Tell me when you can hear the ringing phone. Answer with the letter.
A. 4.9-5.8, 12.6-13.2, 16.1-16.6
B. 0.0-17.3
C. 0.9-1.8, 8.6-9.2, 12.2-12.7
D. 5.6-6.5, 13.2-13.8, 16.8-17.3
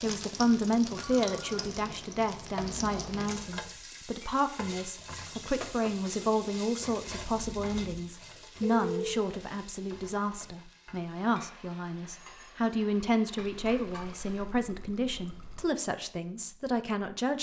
C.